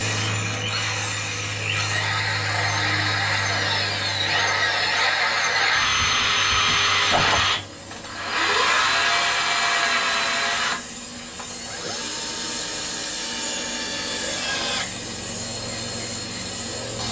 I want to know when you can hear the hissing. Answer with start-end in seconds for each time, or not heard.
0.0-17.0.